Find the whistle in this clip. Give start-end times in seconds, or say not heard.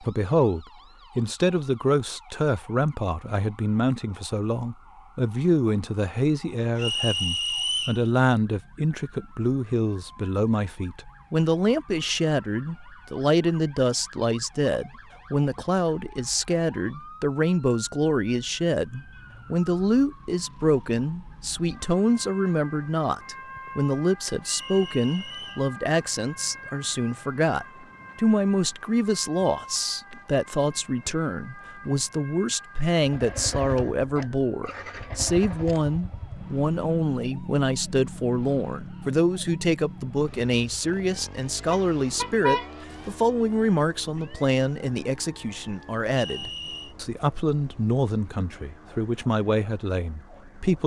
6.8-8.0, 24.4-25.7, 46.1-47.0.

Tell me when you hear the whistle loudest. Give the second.
8 s.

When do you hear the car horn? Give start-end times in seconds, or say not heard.
41.7-43.1.